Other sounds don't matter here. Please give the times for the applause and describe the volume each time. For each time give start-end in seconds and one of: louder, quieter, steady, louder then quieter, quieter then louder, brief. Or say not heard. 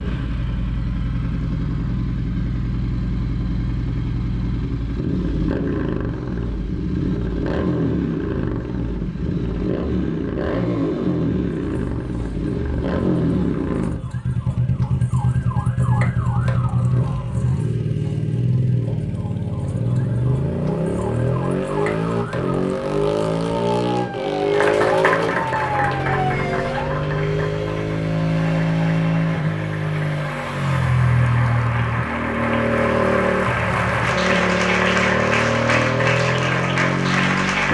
24.5-37.6 quieter then louder.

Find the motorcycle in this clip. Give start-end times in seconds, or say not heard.
0.0-37.6.